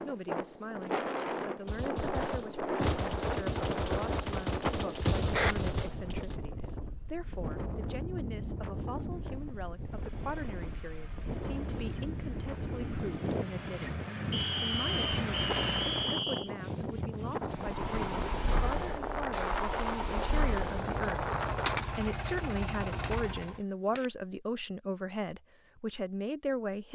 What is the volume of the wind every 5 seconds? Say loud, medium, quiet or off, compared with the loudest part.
loud, medium, loud, loud, loud, off.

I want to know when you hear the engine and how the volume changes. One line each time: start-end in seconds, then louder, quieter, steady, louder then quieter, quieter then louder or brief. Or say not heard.
9.8-16.2 louder
17.5-23.6 steady.